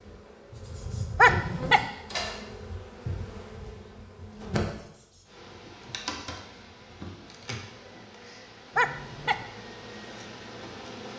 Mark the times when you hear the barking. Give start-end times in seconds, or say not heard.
1.1-1.9, 8.8-9.4.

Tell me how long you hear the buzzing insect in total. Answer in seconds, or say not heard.
11 s.